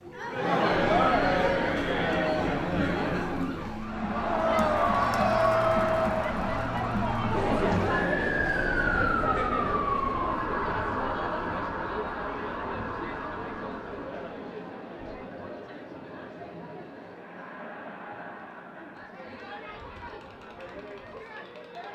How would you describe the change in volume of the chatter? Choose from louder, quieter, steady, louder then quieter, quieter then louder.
quieter.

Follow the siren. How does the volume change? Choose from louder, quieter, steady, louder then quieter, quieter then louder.
louder then quieter.